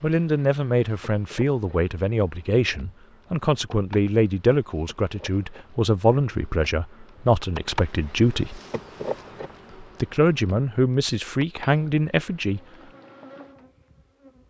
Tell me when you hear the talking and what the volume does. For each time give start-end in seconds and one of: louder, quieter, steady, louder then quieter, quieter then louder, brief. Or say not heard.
0.0-8.6 steady
9.8-12.6 brief.